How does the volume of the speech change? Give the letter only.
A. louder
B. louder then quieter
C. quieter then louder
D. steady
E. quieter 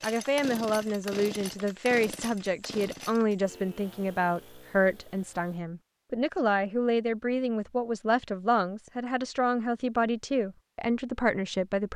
D.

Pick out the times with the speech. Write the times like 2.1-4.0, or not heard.
0.0-11.9.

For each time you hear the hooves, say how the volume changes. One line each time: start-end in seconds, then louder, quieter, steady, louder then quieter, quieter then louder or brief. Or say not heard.
not heard.